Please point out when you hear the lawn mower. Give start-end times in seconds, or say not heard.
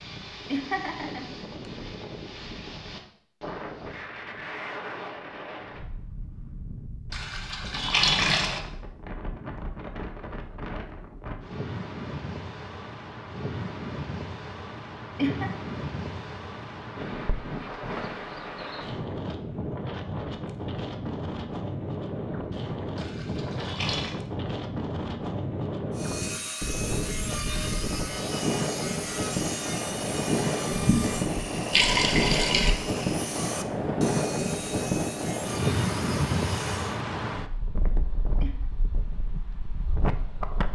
not heard.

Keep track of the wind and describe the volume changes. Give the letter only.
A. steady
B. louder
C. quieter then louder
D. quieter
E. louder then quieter
B.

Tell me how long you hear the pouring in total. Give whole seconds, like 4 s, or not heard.
5 s.